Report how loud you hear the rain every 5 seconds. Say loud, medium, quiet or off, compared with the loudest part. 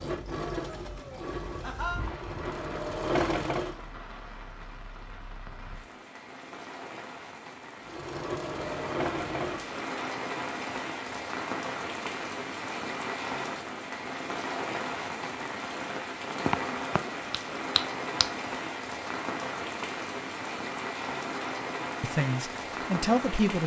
medium, medium, loud, loud, loud.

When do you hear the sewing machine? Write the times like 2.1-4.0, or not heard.
0.0-3.9, 7.8-9.8.